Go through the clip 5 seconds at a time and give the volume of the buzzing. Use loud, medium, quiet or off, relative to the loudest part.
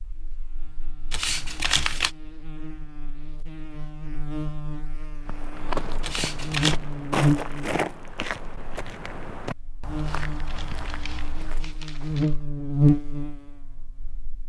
quiet, loud, loud.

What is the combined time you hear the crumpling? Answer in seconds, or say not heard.
4 s.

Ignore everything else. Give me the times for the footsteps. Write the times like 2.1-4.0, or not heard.
5.2-11.8.